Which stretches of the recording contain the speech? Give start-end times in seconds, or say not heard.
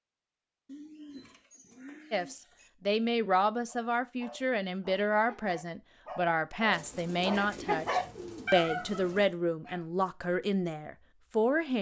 2.1-11.7.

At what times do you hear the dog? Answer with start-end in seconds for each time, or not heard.
3.6-9.8.